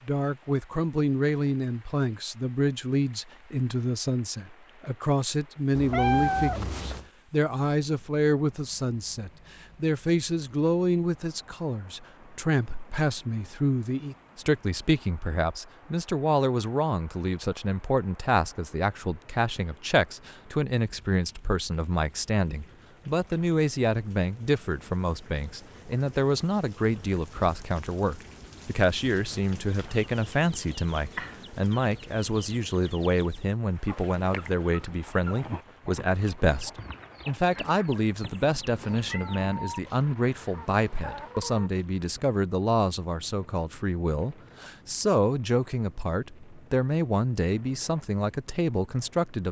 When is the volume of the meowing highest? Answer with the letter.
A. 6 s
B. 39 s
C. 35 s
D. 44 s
A.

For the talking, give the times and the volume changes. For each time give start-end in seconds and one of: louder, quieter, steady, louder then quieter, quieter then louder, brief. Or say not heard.
0.1-49.4 steady.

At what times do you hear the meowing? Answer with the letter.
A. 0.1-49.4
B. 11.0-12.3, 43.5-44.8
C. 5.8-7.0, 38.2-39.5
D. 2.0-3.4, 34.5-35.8
C.